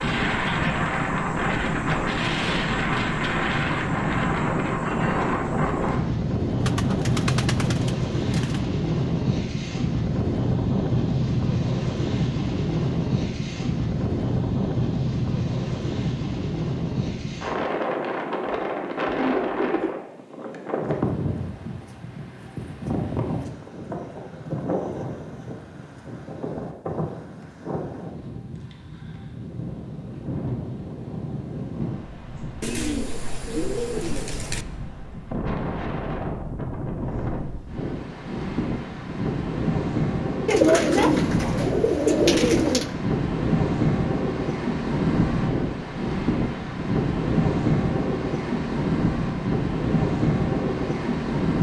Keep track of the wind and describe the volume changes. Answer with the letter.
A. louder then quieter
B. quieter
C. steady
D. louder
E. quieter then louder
E.